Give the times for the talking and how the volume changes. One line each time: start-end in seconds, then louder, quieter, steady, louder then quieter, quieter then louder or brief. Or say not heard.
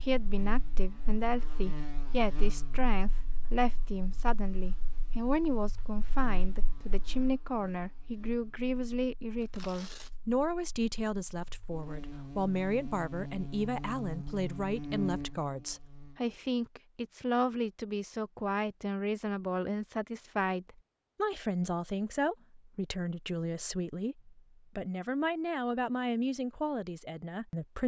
0.0-27.8 steady.